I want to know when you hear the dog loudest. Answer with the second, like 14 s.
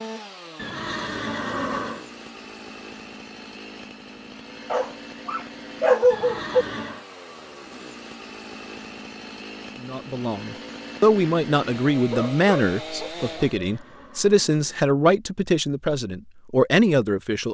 6 s.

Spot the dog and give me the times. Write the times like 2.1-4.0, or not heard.
4.7-6.7, 12.1-14.0.